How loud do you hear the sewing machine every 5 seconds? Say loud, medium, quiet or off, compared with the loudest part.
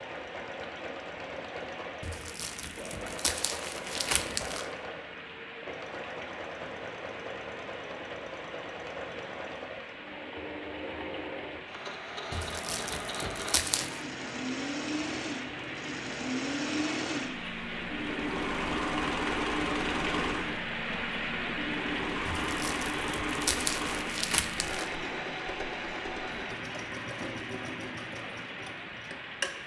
medium, medium, medium, loud, loud, medium.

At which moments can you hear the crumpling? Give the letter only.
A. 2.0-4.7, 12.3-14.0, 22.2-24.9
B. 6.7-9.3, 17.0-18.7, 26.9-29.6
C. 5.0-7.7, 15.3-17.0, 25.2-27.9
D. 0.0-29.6
A.